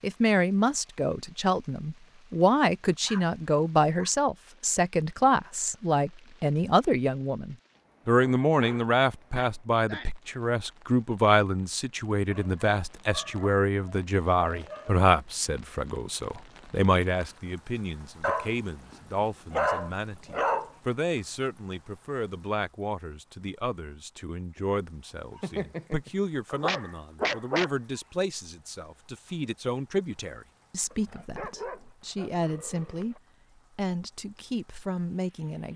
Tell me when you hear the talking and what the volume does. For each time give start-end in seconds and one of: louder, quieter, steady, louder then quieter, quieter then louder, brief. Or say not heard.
0.0-33.1 quieter
33.8-35.7 brief.